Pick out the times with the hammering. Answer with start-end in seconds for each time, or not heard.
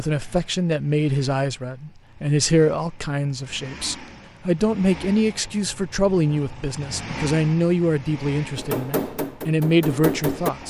8.6-10.6.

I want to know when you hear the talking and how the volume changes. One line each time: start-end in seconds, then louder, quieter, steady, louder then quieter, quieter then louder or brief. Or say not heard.
0.0-10.6 steady.